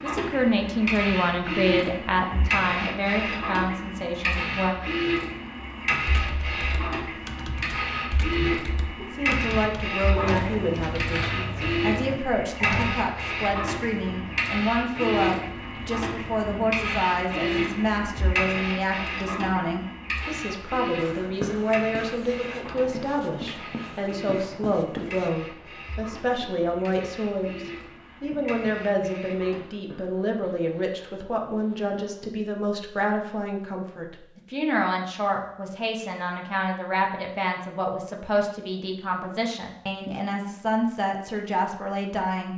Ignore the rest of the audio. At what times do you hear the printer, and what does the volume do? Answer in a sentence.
The printer can be heard from 0.0 to 29.6 s, getting quieter.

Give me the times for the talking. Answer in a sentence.
The talking can be heard from 0.0 to 4.8 s and from 8.3 to 42.5 s.